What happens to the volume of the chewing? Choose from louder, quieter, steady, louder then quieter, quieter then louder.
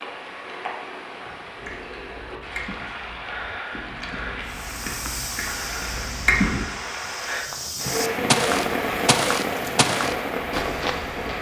quieter then louder.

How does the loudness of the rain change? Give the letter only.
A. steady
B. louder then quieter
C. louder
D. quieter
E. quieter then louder
C.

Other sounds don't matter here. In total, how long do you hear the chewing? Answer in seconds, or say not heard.
5 s.